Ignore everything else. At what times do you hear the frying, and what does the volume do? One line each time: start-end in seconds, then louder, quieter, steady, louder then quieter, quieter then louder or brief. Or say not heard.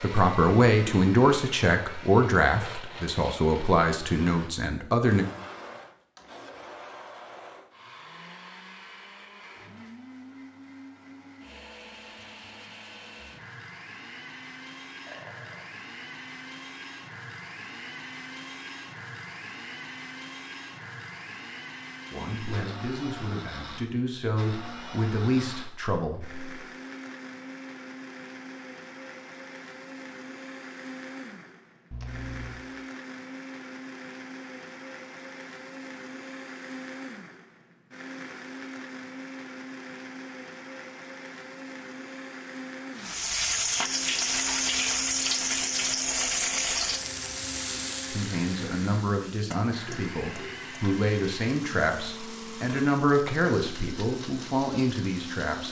43.0-55.6 quieter.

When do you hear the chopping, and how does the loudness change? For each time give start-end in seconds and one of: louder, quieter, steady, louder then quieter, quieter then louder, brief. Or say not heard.
not heard.